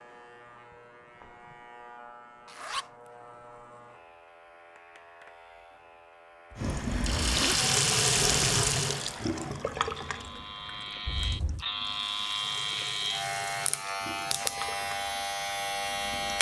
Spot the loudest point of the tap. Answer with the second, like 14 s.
8 s.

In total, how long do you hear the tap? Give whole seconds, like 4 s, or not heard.
10 s.